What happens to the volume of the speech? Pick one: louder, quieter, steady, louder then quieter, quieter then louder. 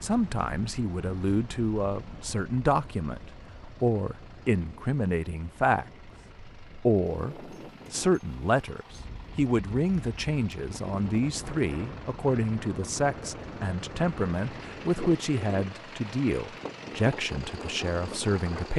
steady.